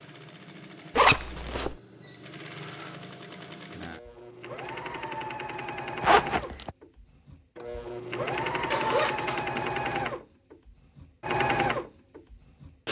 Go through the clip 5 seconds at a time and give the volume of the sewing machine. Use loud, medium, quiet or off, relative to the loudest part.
quiet, loud, loud.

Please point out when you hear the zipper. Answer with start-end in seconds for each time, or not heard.
0.9-1.8, 6.0-6.7, 8.7-9.8.